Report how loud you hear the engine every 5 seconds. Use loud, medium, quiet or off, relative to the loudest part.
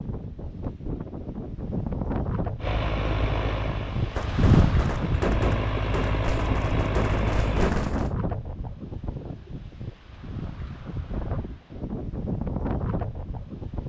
loud, loud, off.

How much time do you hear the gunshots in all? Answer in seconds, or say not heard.
4 s.